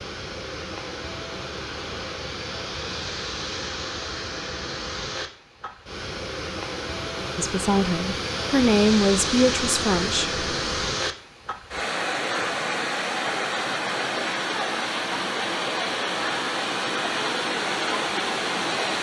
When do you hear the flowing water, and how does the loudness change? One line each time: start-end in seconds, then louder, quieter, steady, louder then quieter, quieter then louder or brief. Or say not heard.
0.0-18.9 louder.